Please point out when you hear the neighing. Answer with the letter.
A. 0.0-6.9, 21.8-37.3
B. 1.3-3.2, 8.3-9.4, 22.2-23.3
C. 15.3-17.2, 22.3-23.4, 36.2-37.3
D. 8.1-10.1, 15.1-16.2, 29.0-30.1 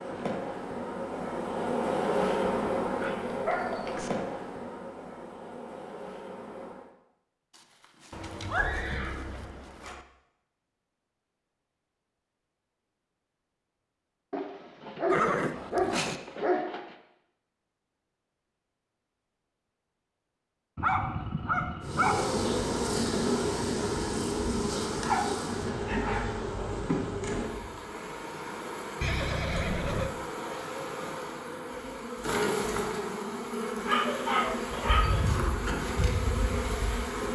D.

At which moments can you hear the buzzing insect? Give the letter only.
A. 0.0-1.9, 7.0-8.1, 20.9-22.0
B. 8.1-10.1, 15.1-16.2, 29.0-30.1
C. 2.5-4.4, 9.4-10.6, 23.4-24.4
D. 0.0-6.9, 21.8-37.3
D.